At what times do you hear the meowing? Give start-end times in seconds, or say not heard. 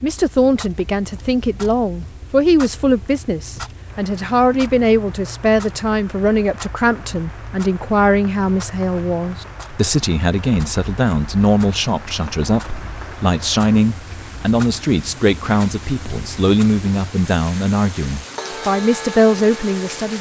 not heard.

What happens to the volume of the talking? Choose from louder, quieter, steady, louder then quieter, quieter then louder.
steady.